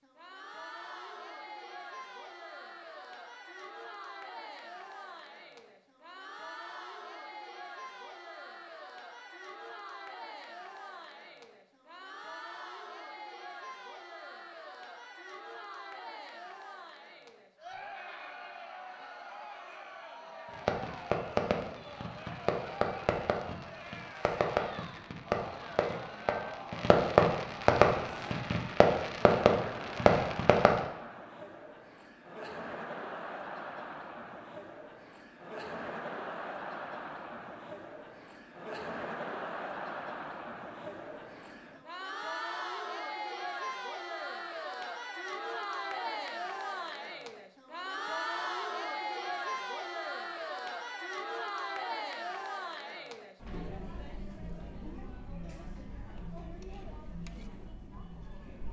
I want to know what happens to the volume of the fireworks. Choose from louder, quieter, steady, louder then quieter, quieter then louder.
louder.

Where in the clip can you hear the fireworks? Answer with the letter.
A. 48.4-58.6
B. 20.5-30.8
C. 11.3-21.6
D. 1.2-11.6
B.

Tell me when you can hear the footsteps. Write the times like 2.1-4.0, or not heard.
not heard.